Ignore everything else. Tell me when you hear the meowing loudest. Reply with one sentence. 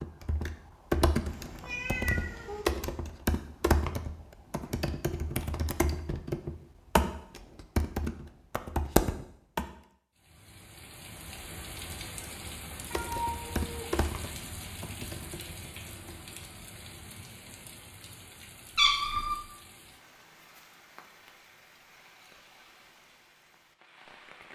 The loudest moment of the meowing is at 19 seconds.